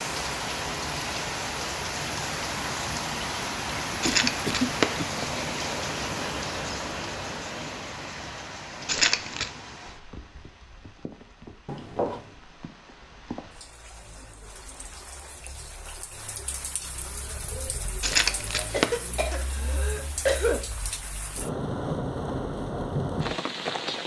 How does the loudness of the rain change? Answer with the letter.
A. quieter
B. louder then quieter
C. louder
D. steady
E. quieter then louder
E.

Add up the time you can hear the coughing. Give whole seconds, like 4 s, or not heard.
4 s.